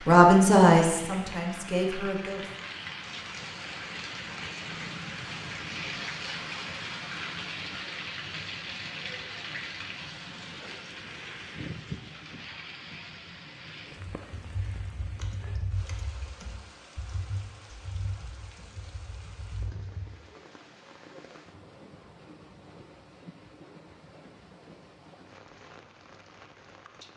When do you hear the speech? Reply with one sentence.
The speech can be heard from 0.1 to 2.5 s.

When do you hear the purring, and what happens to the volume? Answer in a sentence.
You can't hear the purring here.